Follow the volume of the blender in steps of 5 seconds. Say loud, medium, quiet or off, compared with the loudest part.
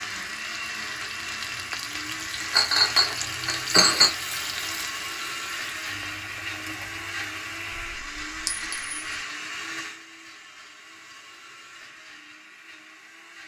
loud, loud, quiet.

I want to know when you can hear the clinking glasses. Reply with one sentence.
The clinking glasses can be heard from 2.5 to 4.1 s and from 8.4 to 8.9 s.